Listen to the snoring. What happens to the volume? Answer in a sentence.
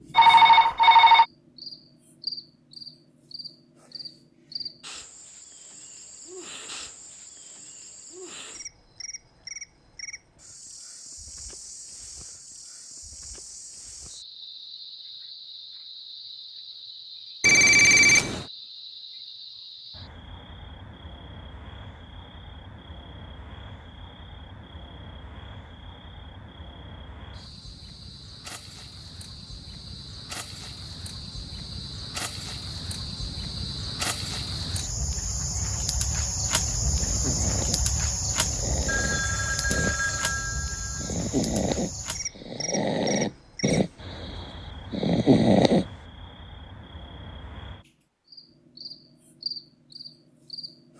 The volume of the snoring goes up.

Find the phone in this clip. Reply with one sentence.
You can hear the phone from 0.1 to 1.2 s, from 17.4 to 18.4 s and from 38.9 to 41.1 s.